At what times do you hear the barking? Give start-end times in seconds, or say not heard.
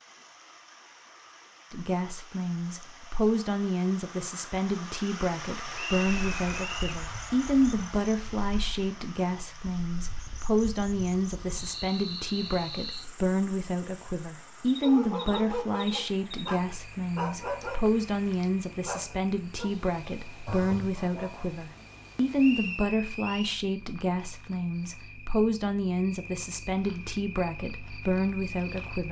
14.8-21.5.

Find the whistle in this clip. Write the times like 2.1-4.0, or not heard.
5.8-7.0, 22.4-23.6.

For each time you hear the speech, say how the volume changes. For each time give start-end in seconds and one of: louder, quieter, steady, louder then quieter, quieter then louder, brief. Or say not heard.
1.7-29.0 steady.